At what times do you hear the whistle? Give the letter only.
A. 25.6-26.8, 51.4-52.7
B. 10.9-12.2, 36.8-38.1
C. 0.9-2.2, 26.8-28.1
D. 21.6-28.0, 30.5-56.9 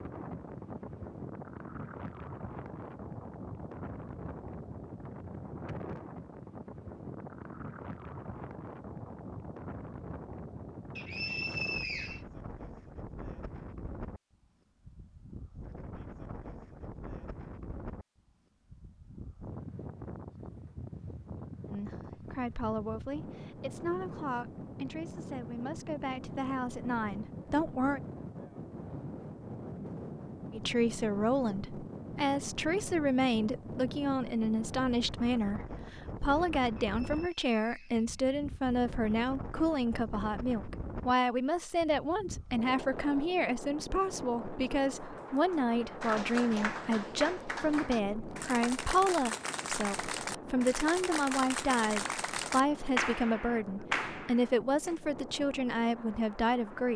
B.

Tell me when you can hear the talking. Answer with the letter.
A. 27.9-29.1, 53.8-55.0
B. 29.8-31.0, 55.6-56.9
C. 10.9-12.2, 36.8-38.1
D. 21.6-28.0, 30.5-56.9
D.